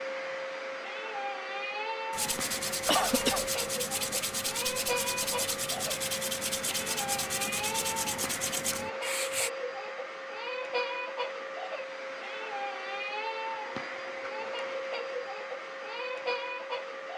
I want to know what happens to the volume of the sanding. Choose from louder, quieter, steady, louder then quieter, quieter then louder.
steady.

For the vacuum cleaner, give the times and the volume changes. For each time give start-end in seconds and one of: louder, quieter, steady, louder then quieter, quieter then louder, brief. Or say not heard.
0.0-17.1 steady.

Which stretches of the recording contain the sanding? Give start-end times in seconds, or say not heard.
2.1-9.5.